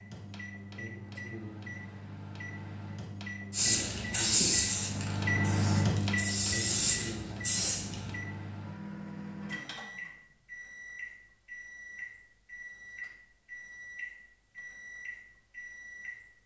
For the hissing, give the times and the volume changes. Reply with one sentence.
You can hear the hissing from 3.5 to 8.0 s, getting quieter then louder.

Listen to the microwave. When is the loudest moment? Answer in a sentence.
The loudest moment of the microwave is at 6 seconds.